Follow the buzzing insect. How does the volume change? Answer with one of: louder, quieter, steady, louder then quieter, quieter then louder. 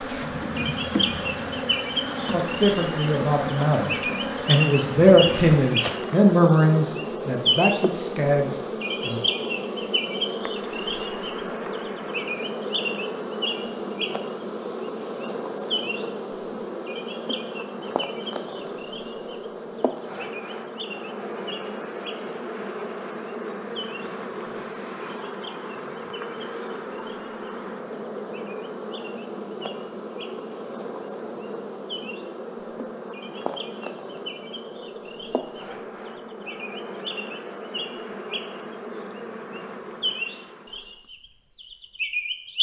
quieter.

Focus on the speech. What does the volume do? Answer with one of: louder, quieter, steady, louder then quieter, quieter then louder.
louder then quieter.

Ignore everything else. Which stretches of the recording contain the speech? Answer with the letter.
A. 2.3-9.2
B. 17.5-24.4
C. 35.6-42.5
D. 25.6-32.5
A.